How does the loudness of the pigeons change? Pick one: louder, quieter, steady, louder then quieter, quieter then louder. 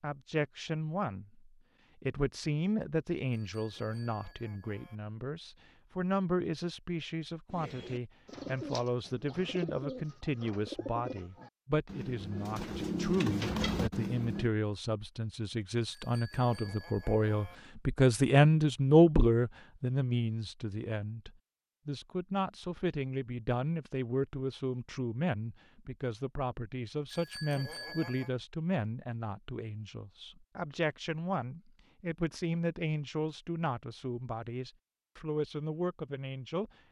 louder.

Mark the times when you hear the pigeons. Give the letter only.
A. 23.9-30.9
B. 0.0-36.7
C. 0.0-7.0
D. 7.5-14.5
D.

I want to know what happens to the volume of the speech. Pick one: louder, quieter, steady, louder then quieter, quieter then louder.
louder then quieter.